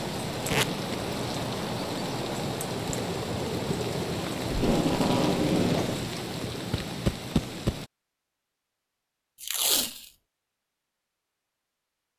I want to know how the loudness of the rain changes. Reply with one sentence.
The loudness of the rain stays about the same.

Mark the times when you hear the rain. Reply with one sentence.
You can hear the rain from 0.0 to 7.9 s.